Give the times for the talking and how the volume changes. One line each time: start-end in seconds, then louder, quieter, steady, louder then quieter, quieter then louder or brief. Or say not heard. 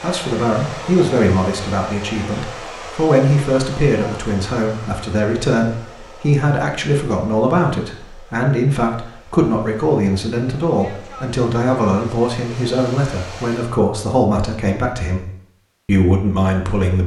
0.0-15.2 steady
15.8-17.0 brief.